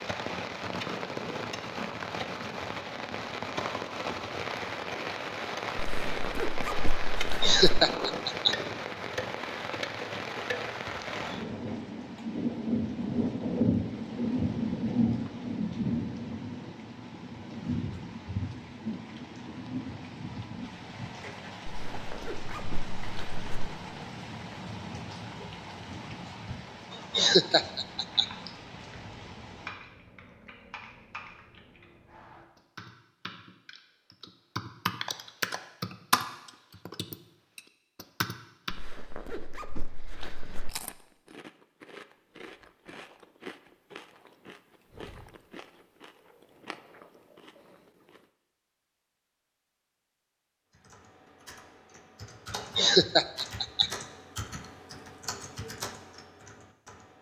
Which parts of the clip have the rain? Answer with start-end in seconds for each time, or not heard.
0.0-29.7.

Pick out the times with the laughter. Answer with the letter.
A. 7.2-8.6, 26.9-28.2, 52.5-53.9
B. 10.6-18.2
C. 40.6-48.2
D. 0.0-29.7
A.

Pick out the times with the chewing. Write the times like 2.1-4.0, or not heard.
40.6-48.2.